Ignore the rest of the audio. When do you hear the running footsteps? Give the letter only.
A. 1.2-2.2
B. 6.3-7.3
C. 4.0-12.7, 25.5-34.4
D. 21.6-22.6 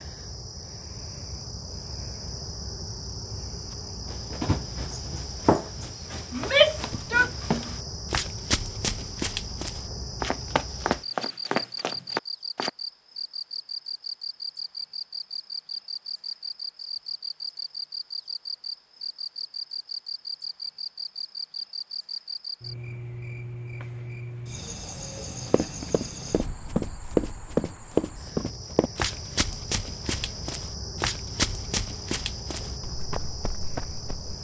C.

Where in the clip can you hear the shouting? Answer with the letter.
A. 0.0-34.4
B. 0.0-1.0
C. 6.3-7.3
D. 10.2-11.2
C.